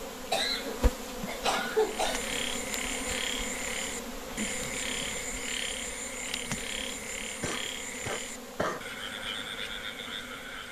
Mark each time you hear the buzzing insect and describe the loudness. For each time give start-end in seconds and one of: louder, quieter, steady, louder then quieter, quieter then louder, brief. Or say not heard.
0.0-10.6 quieter.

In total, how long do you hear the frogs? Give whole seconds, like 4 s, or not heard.
9 s.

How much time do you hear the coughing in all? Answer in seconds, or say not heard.
3 s.